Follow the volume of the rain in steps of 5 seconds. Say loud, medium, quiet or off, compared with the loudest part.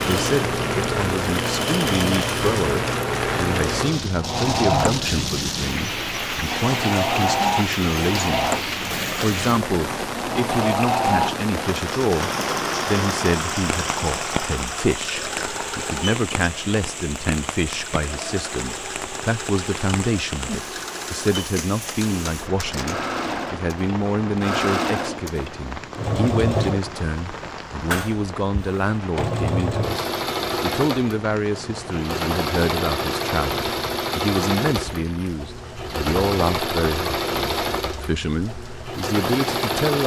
loud, loud, loud, medium, medium, medium, medium, quiet.